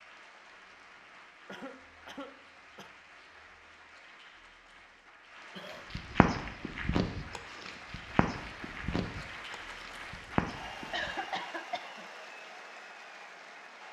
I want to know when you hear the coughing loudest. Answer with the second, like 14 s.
11 s.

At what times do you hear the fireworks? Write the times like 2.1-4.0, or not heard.
not heard.